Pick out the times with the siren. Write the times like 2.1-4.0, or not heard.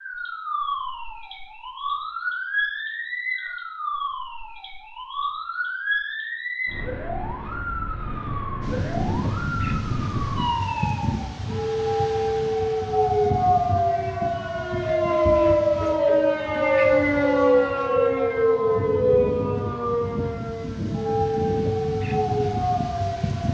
0.0-23.4.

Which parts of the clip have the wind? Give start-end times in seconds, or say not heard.
8.6-23.4.